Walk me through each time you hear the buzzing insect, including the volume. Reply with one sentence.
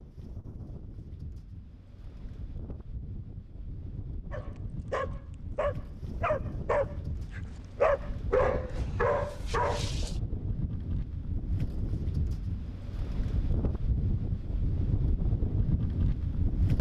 The buzzing insect can't be heard in this clip.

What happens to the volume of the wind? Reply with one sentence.
The loudness of the wind goes up.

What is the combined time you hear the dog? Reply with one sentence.
The dog can be heard for 6 seconds in total.